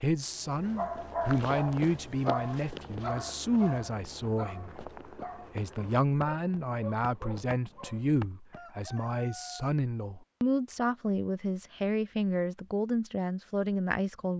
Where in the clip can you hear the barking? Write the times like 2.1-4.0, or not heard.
0.8-8.2.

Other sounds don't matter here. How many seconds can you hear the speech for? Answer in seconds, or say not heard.
14 s.